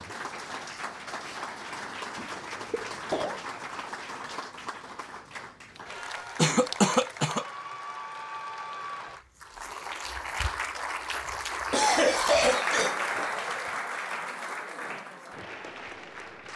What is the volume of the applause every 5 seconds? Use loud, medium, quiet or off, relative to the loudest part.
medium, medium, loud, medium.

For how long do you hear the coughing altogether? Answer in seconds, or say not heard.
4 s.